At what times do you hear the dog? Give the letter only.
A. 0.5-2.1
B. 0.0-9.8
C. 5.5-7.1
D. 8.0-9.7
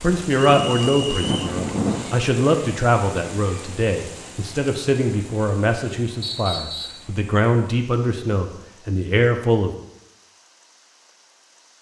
A.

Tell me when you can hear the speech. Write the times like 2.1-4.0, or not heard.
0.0-9.8.